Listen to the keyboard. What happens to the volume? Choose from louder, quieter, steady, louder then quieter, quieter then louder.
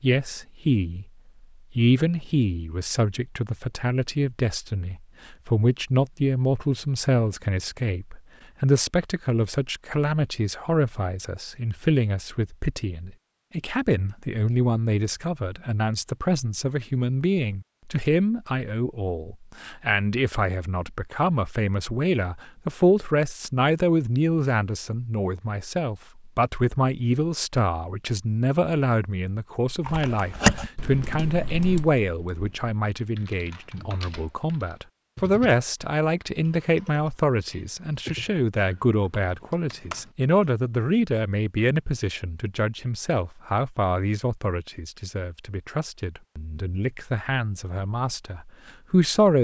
quieter.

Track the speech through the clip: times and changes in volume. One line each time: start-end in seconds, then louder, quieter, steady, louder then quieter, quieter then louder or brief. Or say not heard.
0.0-1.1 brief
1.7-49.3 steady.